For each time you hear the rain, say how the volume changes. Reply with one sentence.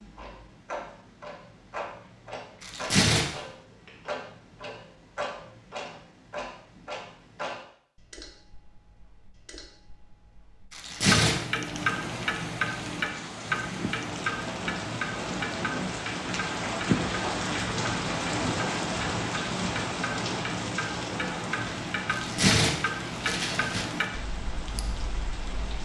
The rain can be heard from 11.7 to 25.7 s, getting louder then quieter.